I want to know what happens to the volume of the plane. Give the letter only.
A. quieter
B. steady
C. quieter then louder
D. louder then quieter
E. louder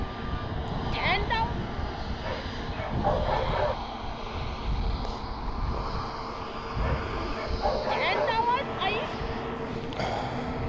B.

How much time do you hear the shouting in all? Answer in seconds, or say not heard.
2 s.